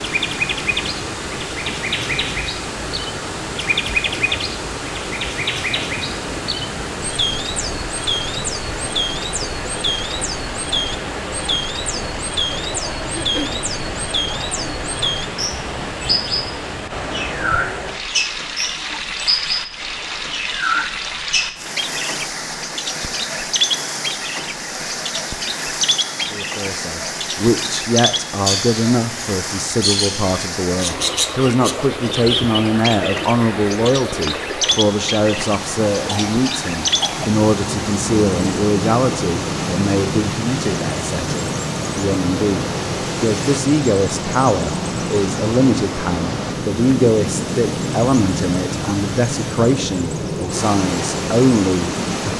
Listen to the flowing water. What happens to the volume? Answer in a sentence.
The loudness of the flowing water stays about the same.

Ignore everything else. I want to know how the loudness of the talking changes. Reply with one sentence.
The volume of the talking stays about the same.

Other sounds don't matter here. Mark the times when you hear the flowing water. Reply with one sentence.
You can hear the flowing water from 0.0 to 52.3 s.